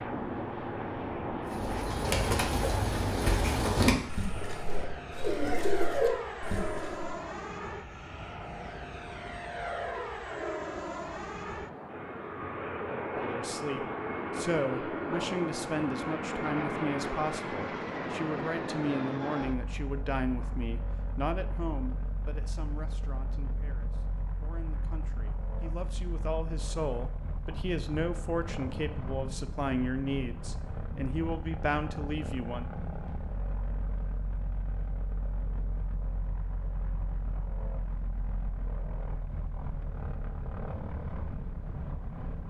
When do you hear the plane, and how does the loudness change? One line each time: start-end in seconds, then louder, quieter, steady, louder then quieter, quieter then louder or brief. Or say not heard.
0.0-42.4 quieter.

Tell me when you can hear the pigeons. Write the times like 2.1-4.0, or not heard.
1.4-7.0.